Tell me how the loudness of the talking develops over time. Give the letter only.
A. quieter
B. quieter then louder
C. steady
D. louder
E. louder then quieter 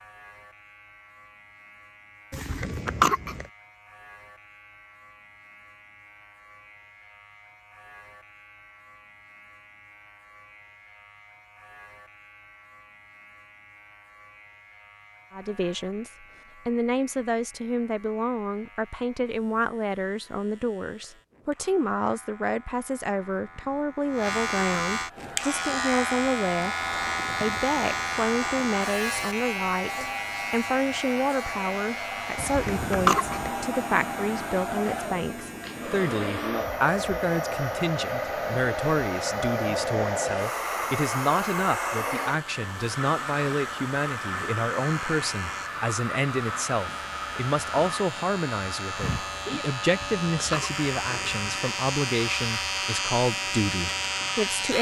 C.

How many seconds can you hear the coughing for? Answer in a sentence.
The coughing can be heard for 4 seconds in total.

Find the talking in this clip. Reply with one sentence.
The talking can be heard from 15.3 to 54.7 s.